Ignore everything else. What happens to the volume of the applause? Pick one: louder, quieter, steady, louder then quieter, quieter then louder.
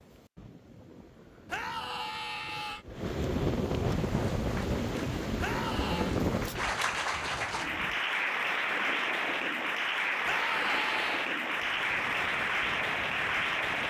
louder.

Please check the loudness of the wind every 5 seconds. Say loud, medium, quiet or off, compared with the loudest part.
loud, loud, medium.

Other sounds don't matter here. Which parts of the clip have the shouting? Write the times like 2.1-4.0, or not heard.
1.4-2.9, 5.4-6.2, 10.2-11.3.